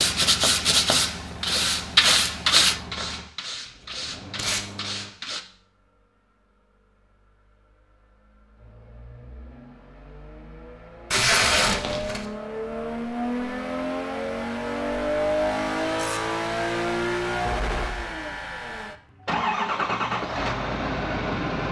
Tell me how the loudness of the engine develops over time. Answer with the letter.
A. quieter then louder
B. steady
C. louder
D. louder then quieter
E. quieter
A.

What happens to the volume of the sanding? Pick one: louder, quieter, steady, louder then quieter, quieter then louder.
quieter.